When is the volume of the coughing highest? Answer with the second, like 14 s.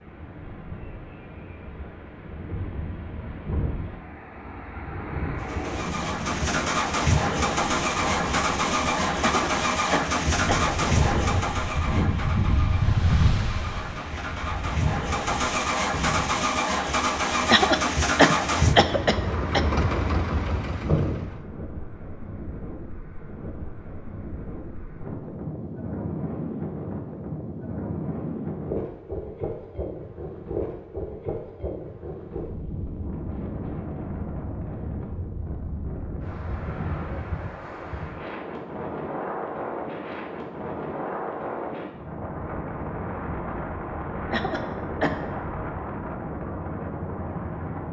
18 s.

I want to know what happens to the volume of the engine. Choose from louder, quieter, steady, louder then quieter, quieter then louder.
quieter then louder.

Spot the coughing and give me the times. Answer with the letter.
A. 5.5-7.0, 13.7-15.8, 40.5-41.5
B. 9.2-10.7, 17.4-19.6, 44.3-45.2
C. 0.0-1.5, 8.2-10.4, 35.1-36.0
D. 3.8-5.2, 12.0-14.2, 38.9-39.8
B.